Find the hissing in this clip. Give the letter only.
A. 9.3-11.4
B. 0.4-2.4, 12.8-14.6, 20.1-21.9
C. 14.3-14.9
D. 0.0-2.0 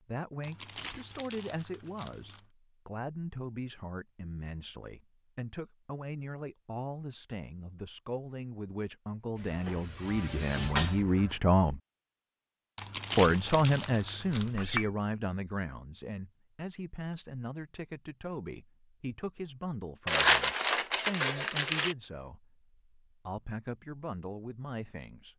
A.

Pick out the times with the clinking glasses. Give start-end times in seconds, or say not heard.
14.3-14.9.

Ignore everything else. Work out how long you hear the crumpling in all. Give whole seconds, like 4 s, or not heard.
6 s.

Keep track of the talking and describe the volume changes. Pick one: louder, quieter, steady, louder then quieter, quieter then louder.
louder then quieter.